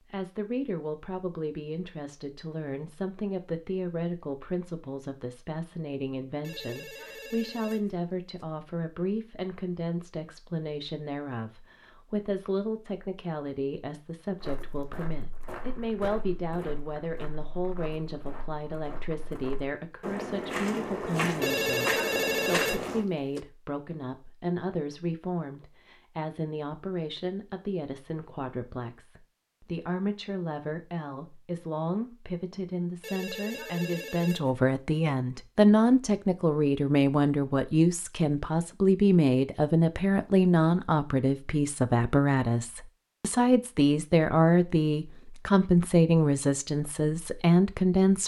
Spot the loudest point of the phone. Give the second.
22 s.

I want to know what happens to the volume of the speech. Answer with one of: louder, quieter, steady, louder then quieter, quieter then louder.
louder.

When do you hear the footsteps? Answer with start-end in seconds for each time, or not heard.
14.4-23.1.